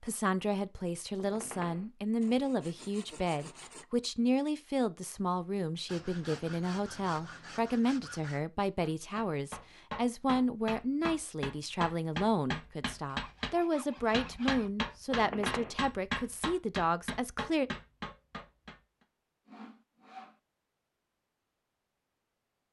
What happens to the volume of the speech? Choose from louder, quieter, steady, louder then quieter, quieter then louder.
steady.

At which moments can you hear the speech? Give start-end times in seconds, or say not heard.
0.0-17.7.